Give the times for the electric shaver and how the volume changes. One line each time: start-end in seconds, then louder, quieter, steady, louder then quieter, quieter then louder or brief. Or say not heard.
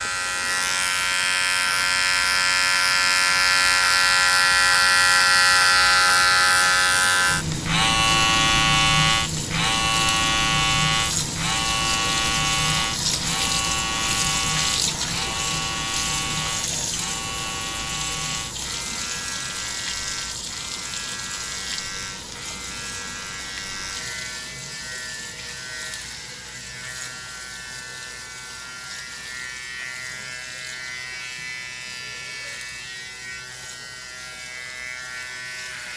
0.0-35.9 quieter.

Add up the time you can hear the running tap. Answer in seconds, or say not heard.
36 s.